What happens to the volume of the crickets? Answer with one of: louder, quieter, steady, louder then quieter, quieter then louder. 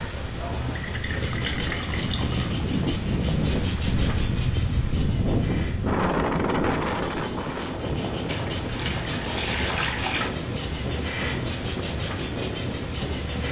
quieter then louder.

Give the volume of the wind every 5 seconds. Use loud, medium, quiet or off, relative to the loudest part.
loud, loud, medium.